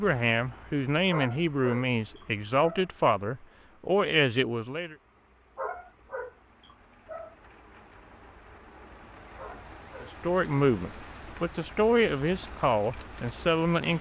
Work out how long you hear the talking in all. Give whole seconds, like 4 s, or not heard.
9 s.